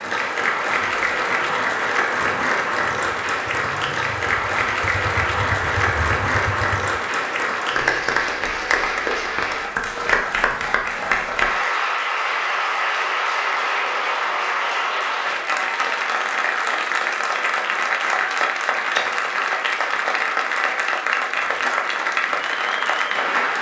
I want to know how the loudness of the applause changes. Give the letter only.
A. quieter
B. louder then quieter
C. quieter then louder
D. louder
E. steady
E.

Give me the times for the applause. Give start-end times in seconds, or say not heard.
0.0-23.5.